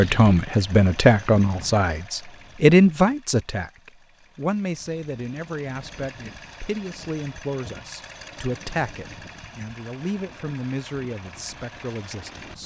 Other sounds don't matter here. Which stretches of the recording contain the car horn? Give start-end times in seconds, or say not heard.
not heard.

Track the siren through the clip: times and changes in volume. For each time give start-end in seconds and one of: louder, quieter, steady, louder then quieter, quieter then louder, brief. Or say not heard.
not heard.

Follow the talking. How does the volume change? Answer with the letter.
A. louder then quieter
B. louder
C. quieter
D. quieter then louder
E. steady
C.